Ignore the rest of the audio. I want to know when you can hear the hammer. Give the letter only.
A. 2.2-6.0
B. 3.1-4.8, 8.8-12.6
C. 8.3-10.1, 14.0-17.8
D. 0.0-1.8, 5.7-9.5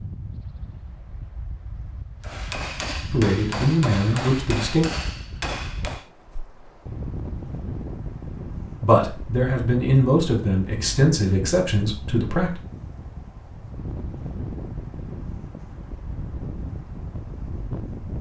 A.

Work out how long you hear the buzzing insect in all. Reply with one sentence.
The buzzing insect can't be heard in this clip.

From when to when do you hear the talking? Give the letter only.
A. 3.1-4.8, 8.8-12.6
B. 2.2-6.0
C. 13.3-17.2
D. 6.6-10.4
A.